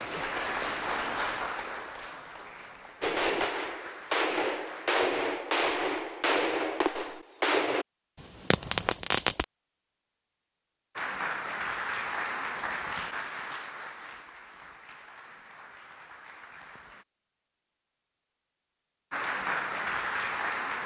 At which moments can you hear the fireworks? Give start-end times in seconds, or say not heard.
3.0-9.4.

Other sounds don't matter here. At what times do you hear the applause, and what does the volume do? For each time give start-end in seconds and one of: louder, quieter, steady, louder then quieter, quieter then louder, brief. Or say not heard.
0.0-5.0 quieter
10.9-17.1 quieter
19.1-20.8 brief.